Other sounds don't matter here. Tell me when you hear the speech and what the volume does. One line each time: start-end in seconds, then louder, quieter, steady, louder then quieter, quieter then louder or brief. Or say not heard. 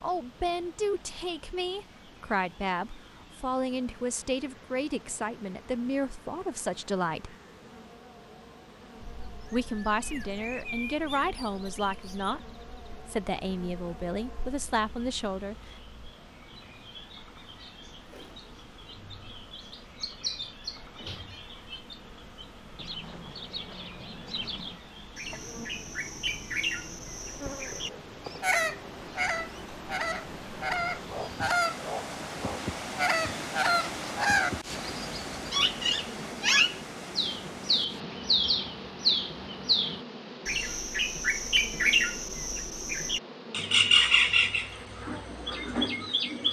0.0-7.3 steady
9.5-15.8 steady.